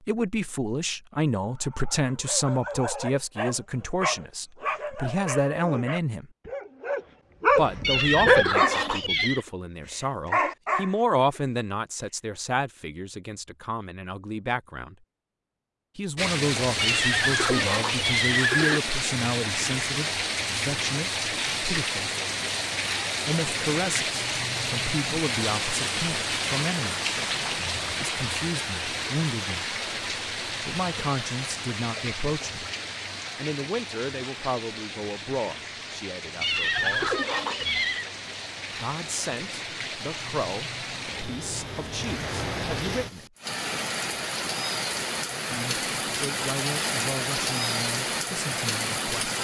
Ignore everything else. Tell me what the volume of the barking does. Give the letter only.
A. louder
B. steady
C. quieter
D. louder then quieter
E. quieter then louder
D.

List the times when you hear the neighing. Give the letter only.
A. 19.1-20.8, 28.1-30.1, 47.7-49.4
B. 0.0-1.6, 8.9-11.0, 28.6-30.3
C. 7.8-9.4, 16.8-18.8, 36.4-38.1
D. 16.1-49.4
C.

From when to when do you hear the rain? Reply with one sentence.
You can hear the rain from 16.1 to 49.4 s.